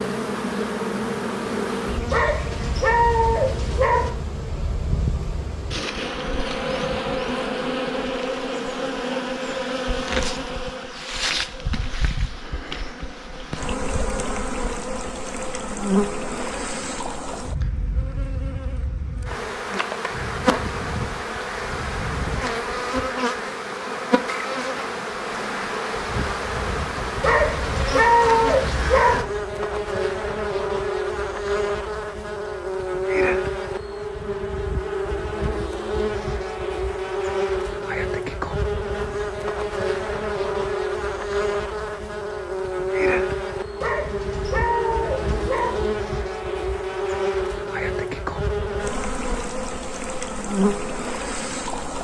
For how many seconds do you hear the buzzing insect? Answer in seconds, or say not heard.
52 s.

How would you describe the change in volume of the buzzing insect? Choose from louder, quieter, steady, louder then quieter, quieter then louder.
steady.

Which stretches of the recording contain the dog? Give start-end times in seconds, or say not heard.
2.1-4.1, 27.2-29.2, 43.8-45.8.